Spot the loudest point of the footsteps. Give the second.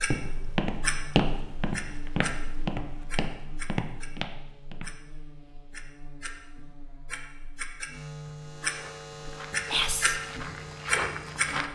1 s.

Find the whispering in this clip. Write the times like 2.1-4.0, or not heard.
9.7-10.2.